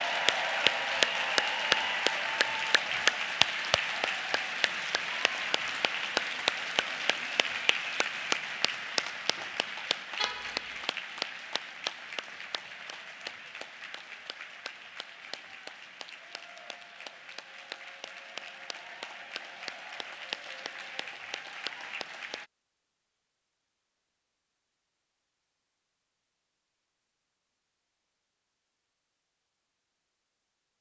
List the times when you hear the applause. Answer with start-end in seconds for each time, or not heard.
0.0-22.4.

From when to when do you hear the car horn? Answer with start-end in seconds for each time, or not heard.
10.2-10.8.